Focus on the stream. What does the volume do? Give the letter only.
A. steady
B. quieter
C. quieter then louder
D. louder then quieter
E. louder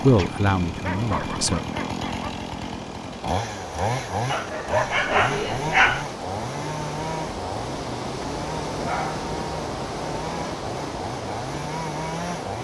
E.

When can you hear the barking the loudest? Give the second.
6 s.